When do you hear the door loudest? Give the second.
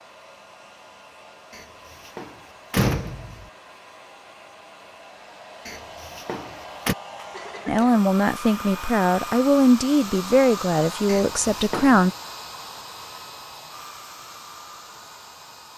3 s.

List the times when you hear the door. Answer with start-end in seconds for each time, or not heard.
1.5-3.5, 5.7-7.0, 11.1-12.1.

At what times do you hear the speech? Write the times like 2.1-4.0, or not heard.
7.7-12.1.